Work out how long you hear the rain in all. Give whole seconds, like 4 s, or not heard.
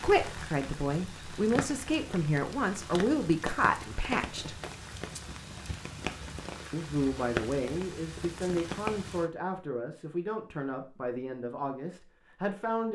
9 s.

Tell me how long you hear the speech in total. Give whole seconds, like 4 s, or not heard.
11 s.